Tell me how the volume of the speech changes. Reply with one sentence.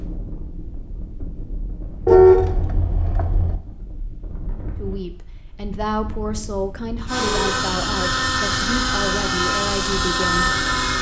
The loudness of the speech stays about the same.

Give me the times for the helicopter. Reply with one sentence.
You can hear the helicopter from 7.0 to 10.9 s.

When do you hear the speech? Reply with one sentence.
The speech can be heard from 4.8 to 10.9 s.